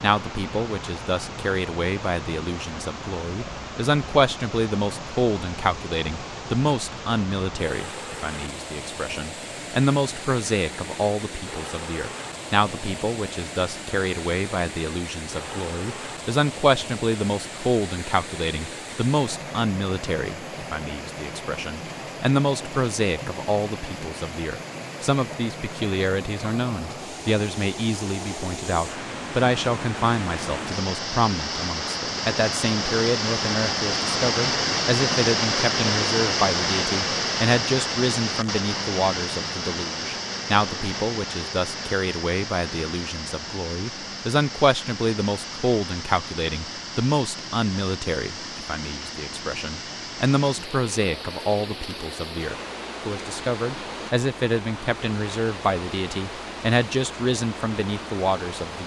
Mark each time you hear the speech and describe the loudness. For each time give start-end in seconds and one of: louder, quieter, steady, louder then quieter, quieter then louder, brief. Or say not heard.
0.0-58.8 steady.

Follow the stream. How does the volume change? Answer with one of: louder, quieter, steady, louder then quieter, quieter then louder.
louder then quieter.